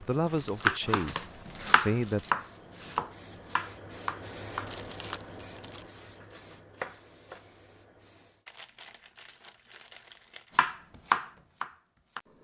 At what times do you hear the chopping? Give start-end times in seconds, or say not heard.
0.0-7.5, 10.6-12.3.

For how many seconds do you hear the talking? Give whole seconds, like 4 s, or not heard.
2 s.